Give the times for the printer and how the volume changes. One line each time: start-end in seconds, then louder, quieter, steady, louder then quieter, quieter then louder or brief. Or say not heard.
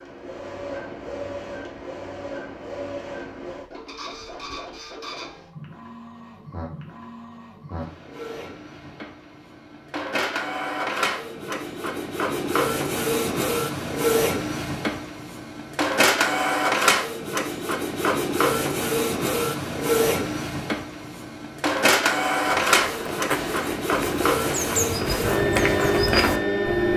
0.0-26.9 louder.